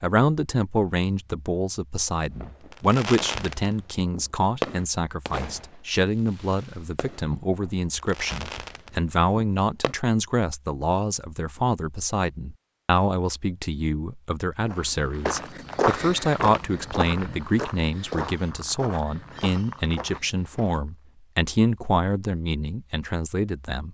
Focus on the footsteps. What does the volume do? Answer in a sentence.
The volume of the footsteps goes down.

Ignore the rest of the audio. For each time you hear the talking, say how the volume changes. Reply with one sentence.
You can hear the talking from 0.0 to 23.8 s, at a steady volume.